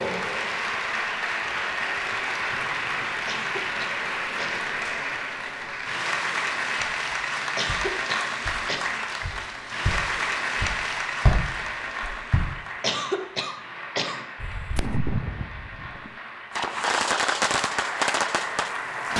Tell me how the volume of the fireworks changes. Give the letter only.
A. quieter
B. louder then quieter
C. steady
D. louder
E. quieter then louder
E.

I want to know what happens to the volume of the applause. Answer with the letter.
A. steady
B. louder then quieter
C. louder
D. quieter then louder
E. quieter
E.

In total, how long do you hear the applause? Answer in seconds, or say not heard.
19 s.